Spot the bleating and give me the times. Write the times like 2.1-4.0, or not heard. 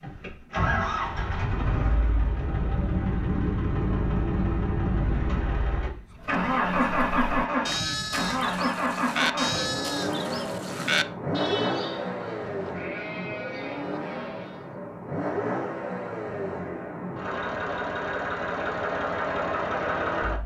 6.2-14.7.